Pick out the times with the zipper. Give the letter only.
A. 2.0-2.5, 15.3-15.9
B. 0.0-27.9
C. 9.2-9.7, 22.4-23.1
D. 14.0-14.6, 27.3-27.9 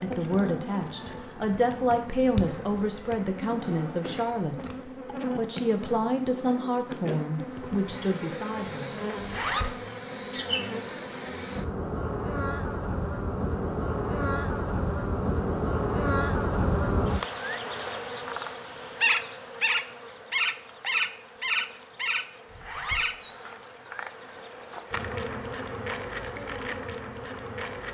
C.